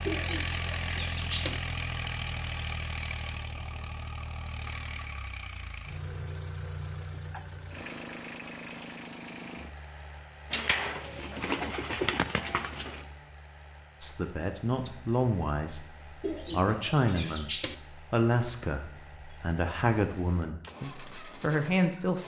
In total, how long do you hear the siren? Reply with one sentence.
The siren can't be heard in this clip.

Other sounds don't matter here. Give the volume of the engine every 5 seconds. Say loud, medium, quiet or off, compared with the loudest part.
loud, medium, quiet, quiet, medium.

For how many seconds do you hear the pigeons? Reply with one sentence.
The pigeons can be heard for 6 seconds in total.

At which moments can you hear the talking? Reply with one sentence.
You can hear the talking from 14.0 to 15.8 s and from 16.5 to 22.2 s.